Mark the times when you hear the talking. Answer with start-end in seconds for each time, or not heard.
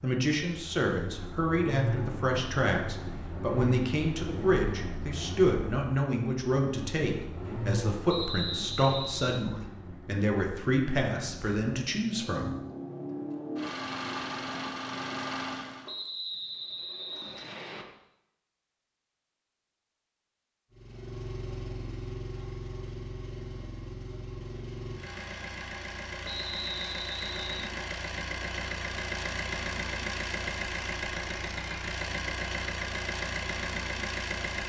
0.0-12.6.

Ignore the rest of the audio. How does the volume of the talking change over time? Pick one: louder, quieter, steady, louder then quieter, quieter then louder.
steady.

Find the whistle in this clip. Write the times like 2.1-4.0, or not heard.
8.1-9.4, 15.8-17.9, 26.2-27.7.